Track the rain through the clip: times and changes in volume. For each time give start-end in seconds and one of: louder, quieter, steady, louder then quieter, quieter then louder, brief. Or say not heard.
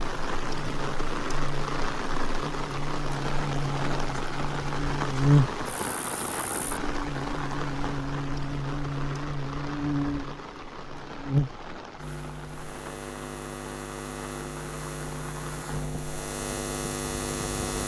0.0-17.8 quieter.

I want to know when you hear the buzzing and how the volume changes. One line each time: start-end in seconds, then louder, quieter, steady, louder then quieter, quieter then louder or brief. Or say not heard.
0.0-17.8 louder then quieter.